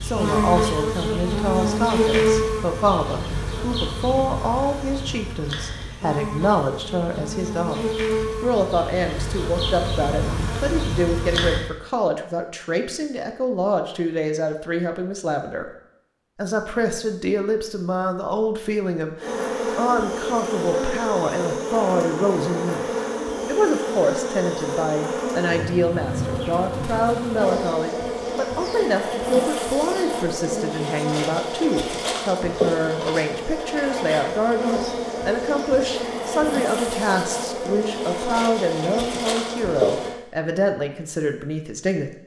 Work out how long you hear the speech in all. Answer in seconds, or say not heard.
41 s.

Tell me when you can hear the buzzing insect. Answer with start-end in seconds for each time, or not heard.
0.0-11.7, 19.2-40.1.